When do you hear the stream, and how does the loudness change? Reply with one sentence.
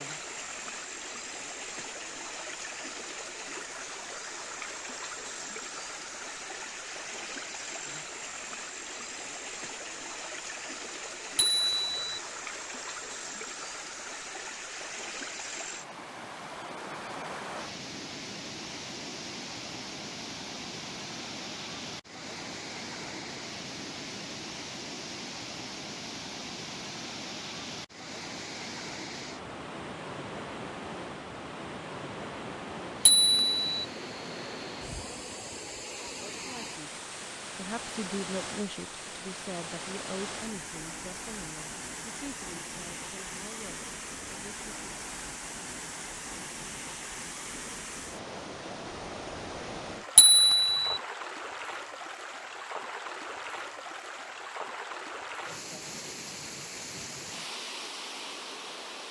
You can hear the stream from 0.0 to 59.0 s, at a steady volume.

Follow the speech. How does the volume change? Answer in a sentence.
The volume of the speech goes down.